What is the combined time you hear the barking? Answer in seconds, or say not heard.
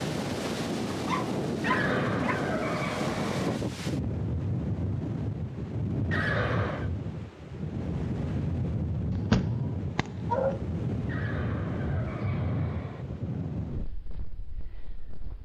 3 s.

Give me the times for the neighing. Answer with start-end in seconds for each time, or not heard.
1.6-3.6, 6.1-6.9, 11.1-13.1.